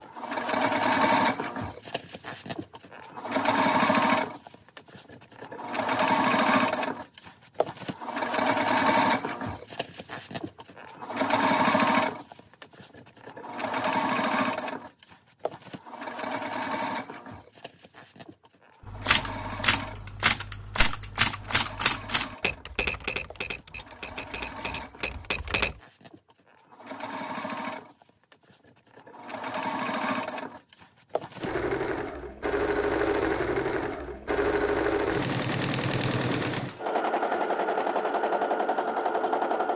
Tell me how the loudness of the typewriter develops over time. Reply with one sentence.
The loudness of the typewriter goes down.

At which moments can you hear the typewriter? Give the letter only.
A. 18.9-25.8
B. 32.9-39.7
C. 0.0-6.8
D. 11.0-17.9
A.